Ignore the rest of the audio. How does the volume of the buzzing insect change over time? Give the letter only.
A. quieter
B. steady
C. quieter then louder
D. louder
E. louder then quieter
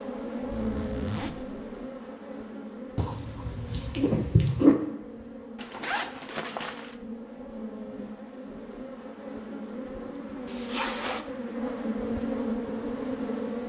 C.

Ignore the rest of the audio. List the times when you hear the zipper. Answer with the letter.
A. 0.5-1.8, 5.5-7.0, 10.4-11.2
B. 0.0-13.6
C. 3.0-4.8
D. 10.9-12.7
A.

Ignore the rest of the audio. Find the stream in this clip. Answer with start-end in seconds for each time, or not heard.
not heard.